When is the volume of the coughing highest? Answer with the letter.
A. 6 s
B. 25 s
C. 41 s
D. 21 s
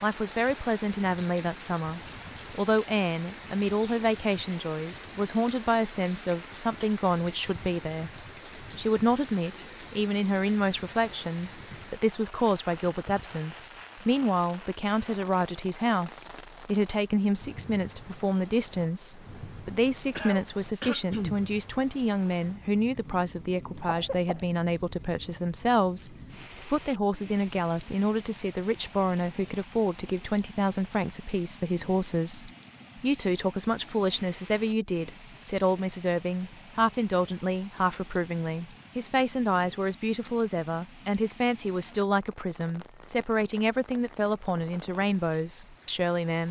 D.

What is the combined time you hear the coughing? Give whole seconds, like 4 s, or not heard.
2 s.